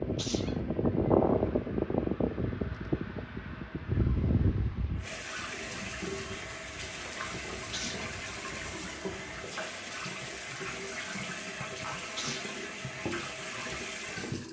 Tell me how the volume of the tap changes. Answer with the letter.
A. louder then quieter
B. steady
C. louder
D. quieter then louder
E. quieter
C.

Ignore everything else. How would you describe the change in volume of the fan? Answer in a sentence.
The loudness of the fan goes down.